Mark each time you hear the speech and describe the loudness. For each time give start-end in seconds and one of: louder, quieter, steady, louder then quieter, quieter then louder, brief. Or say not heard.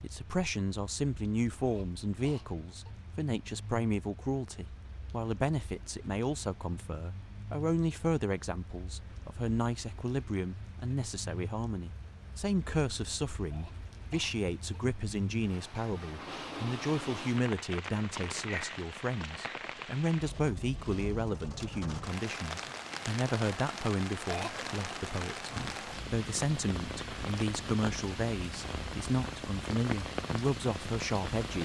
0.0-31.6 steady.